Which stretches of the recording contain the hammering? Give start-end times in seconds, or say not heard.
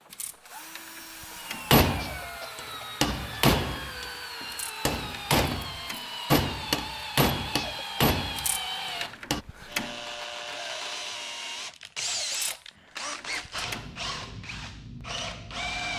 1.7-9.4.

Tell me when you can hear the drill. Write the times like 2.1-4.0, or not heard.
0.0-15.9.